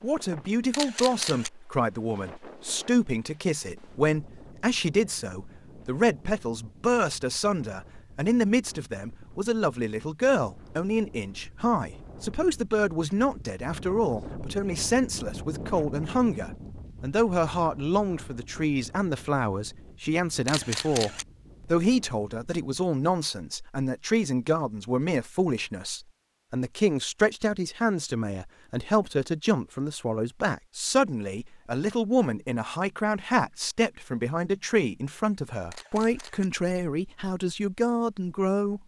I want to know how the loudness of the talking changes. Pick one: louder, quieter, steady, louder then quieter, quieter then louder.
steady.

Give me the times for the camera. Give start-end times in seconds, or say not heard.
0.7-1.5, 20.4-21.2, 35.7-36.5.